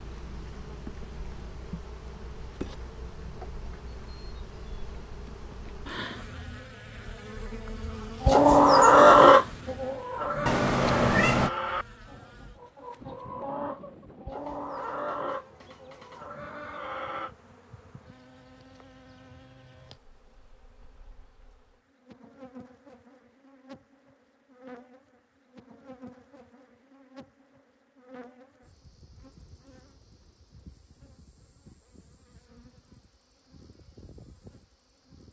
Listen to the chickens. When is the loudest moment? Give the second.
9 s.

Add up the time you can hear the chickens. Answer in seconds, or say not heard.
9 s.